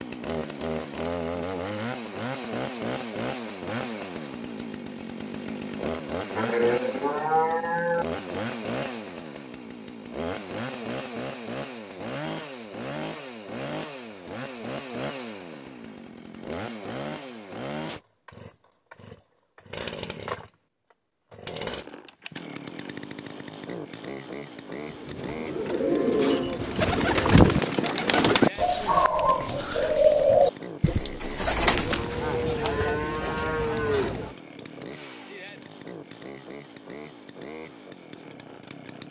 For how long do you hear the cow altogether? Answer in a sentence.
You can hear the cow for 5 seconds altogether.